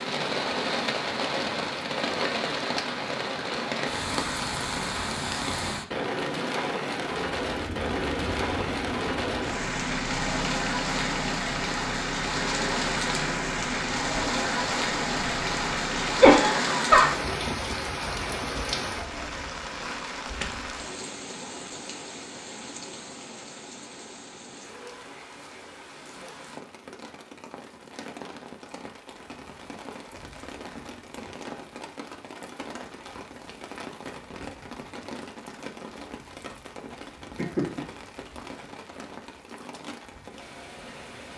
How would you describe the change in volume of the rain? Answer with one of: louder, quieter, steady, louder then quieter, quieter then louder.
quieter.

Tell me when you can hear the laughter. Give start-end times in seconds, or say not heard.
16.2-17.1, 37.4-37.9.